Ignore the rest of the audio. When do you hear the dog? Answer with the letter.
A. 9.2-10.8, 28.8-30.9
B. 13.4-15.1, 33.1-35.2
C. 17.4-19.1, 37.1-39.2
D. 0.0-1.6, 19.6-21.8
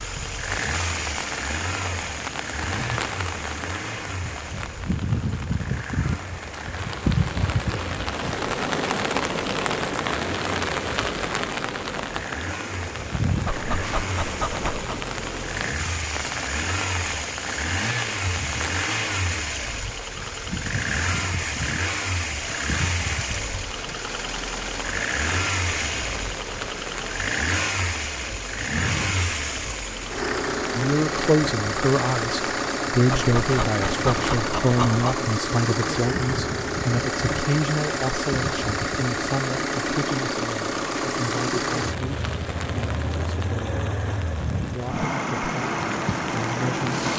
B.